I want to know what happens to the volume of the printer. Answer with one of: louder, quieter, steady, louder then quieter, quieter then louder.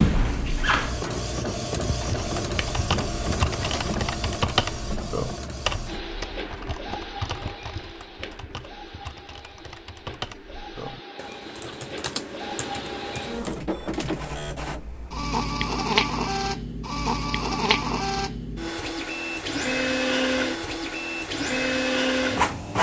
quieter then louder.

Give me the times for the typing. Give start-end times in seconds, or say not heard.
2.0-13.6.